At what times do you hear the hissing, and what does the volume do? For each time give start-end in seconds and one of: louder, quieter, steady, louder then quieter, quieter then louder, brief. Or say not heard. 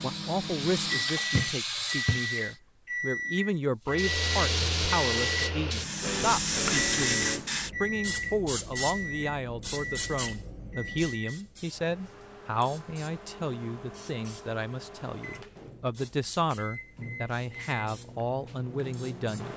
0.0-2.5 brief
3.9-19.5 quieter.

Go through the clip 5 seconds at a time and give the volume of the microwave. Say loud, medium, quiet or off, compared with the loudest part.
loud, loud, medium, medium.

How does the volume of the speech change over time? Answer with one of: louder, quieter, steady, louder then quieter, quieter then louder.
steady.